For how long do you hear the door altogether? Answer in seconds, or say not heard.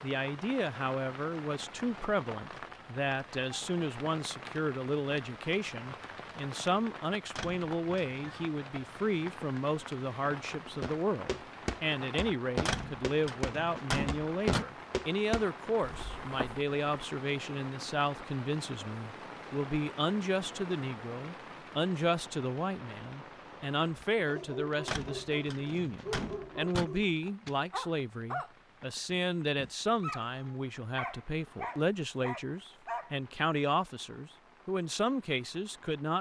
5 s.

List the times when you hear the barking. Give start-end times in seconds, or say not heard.
23.9-28.5, 29.1-33.2.